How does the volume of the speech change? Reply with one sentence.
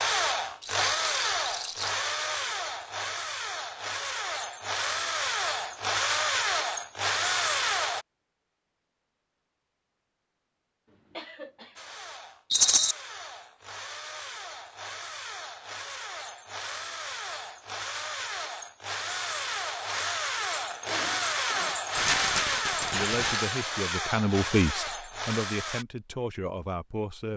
The volume of the speech goes up, then down.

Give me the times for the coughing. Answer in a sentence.
You can hear the coughing from 10.9 to 11.8 s and from 20.8 to 21.8 s.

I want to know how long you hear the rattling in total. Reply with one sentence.
The rattling can be heard for 3 seconds in total.